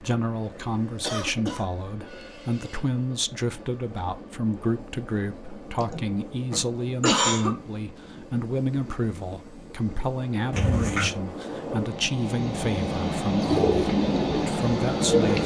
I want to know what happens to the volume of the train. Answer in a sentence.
The volume of the train goes up.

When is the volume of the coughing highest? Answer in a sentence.
The volume of the coughing peaks at 7 seconds.